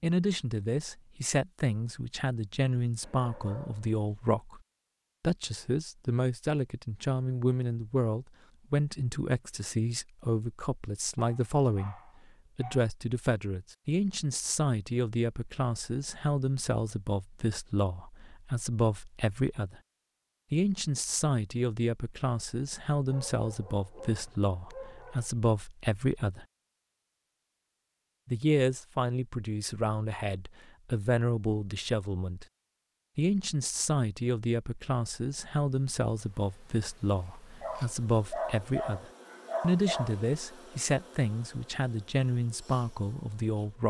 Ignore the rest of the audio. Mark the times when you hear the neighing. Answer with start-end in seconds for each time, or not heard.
not heard.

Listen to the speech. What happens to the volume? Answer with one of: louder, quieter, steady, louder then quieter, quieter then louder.
steady.